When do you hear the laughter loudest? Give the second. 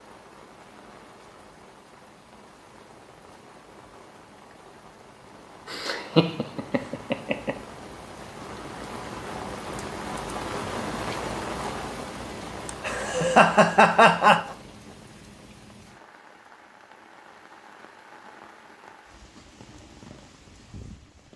14 s.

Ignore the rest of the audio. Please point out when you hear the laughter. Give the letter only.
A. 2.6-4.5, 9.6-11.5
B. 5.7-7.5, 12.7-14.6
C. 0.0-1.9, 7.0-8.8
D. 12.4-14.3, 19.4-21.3
B.